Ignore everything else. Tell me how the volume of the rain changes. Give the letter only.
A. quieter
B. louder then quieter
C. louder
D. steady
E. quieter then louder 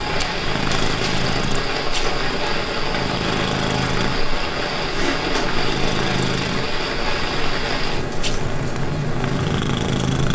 D.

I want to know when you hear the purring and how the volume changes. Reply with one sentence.
You can hear the purring from 0.0 to 10.3 s, at a steady volume.